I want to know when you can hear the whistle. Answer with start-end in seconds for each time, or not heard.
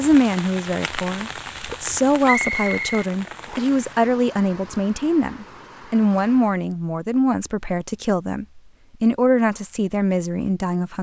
2.2-3.9.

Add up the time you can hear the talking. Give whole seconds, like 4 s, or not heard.
11 s.